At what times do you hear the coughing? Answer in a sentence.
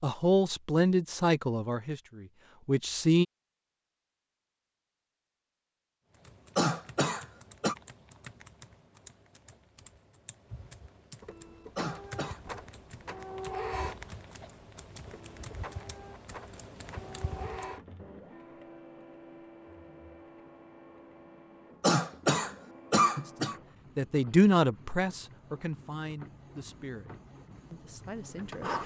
The coughing can be heard from 6.5 to 7.8 s, from 11.8 to 12.4 s and from 21.8 to 23.6 s.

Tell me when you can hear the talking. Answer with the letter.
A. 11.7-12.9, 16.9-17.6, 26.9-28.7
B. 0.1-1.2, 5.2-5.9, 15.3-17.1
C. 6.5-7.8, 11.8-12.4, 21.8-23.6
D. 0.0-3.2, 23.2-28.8
D.